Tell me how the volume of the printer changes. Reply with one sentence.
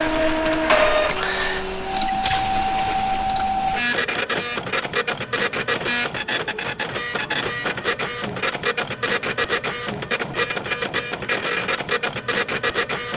The volume of the printer stays about the same.